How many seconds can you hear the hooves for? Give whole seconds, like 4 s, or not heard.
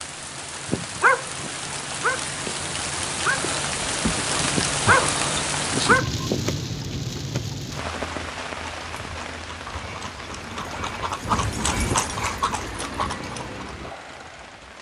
6 s.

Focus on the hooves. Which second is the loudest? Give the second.
12 s.